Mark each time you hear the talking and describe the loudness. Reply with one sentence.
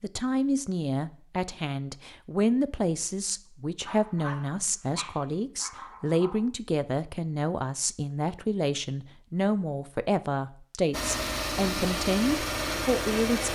The talking can be heard from 0.0 to 13.5 s, at a steady volume.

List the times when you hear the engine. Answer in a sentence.
You can hear the engine from 10.9 to 13.5 s.